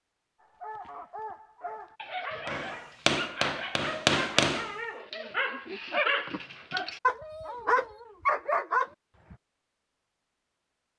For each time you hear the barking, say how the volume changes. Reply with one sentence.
The barking can be heard from 0.6 to 9.3 s, getting louder.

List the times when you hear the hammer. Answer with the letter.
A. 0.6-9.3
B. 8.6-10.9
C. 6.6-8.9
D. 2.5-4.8
D.